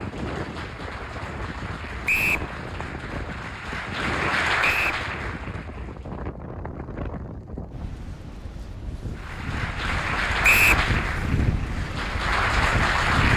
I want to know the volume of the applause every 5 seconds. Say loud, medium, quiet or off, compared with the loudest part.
medium, medium, loud.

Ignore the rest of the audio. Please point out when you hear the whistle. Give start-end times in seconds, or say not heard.
2.0-2.5, 4.6-5.0, 10.4-10.8.